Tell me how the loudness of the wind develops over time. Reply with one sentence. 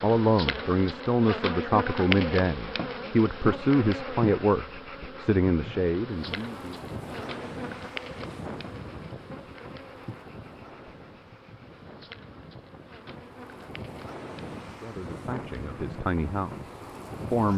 The loudness of the wind goes down, then up.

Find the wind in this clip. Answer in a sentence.
You can hear the wind from 6.0 to 17.5 s.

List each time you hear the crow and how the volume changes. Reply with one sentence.
You can't hear the crow here.